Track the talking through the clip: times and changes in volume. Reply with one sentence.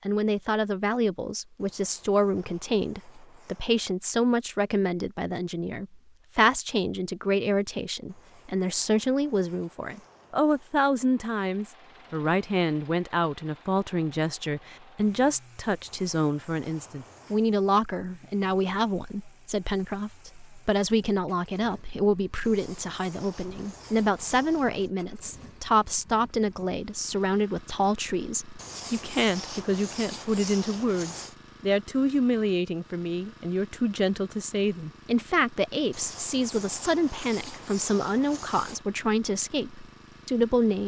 The talking can be heard from 0.1 to 40.8 s, at a steady volume.